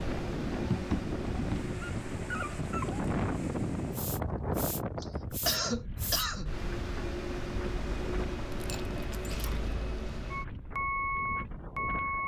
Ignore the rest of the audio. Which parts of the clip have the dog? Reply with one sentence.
You can hear the dog from 0.5 to 3.1 s and from 8.5 to 9.6 s.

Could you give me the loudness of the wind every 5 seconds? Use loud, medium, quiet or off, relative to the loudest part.
loud, medium, medium.